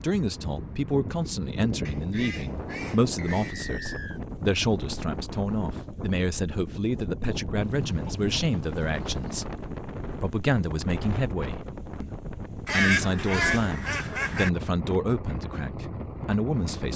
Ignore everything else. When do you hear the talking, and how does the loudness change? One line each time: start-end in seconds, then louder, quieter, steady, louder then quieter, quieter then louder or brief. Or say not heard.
0.0-16.9 steady.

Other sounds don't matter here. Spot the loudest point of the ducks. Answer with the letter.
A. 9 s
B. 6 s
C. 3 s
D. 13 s
D.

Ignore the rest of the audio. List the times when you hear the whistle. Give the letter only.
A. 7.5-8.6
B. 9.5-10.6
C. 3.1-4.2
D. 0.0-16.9
C.